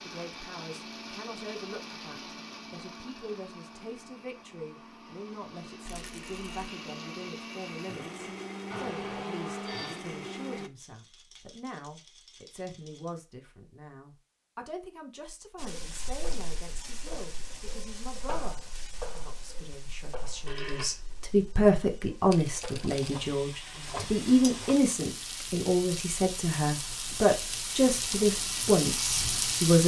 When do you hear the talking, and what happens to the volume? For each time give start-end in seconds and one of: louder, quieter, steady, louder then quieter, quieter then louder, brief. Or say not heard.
0.0-29.8 louder.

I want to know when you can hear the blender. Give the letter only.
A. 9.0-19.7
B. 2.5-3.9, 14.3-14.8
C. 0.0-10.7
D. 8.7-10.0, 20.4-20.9
C.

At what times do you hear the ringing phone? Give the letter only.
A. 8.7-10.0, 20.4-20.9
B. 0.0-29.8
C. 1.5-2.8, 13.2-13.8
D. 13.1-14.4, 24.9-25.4
A.